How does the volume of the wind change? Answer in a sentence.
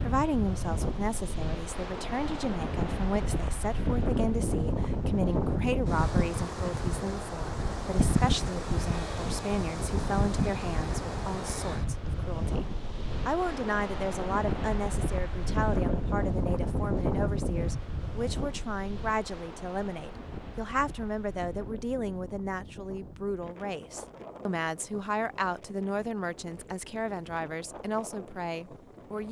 The loudness of the wind goes down.